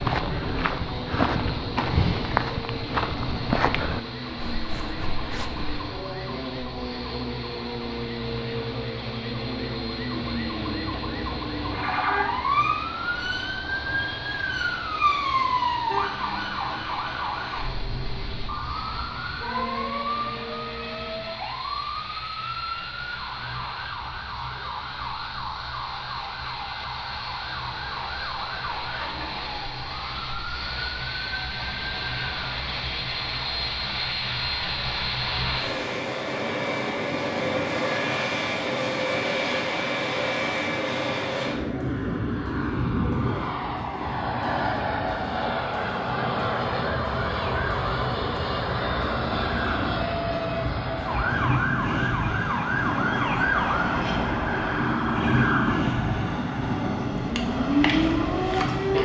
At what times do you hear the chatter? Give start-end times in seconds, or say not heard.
not heard.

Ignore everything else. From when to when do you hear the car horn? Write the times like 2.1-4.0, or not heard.
not heard.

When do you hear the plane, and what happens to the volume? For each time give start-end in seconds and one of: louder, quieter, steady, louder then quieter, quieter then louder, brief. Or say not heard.
0.0-59.0 louder.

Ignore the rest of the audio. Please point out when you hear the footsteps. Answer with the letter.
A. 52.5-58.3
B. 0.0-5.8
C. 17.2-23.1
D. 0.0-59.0
B.